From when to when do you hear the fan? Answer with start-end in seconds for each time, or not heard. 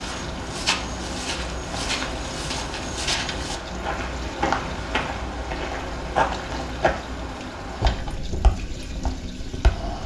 0.0-10.0.